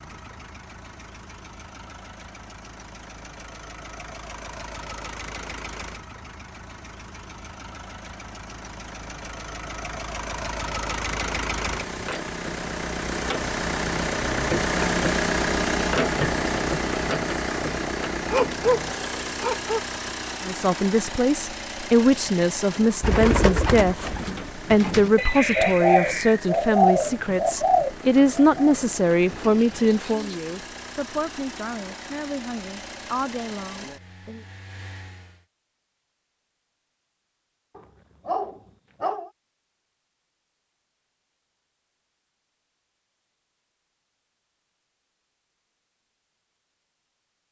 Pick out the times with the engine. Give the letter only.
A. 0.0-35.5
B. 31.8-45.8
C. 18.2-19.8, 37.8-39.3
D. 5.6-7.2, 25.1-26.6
A.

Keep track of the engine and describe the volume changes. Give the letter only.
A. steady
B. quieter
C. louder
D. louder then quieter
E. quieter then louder
D.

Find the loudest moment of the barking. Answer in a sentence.
The loudest moment of the barking is at 19 seconds.